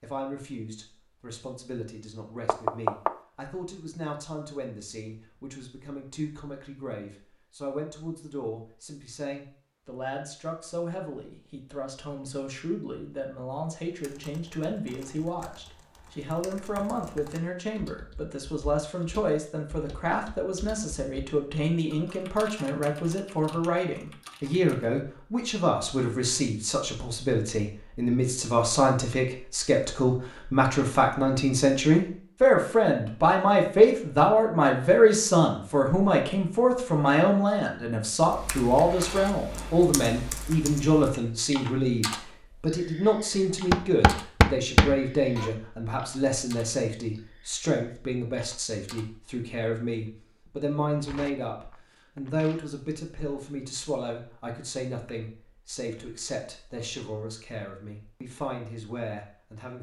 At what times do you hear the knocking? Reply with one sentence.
You can hear the knocking from 2.5 to 3.1 s and from 43.7 to 45.5 s.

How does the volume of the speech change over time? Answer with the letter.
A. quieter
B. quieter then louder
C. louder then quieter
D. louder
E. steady
C.